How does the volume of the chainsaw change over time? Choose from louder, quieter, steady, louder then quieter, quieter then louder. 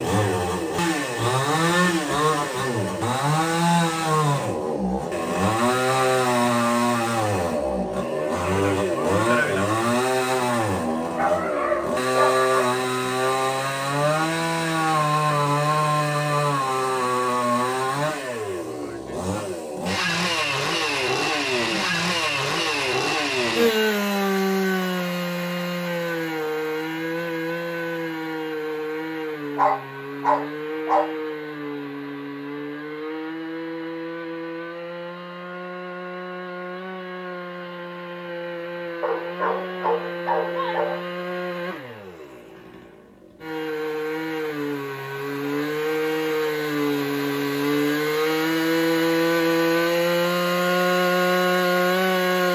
quieter then louder.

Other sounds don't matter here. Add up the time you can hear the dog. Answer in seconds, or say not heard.
5 s.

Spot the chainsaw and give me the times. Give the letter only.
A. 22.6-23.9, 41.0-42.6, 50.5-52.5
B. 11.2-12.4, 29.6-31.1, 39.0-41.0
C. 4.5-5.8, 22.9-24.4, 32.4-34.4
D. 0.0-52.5
D.